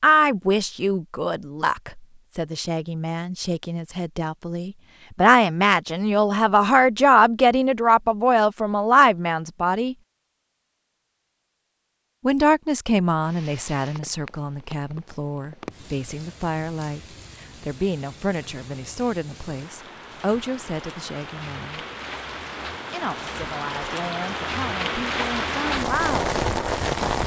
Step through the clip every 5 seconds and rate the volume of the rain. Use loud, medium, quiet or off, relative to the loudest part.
off, off, quiet, quiet, medium, loud.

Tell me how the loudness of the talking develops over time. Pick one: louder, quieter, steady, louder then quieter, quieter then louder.
louder then quieter.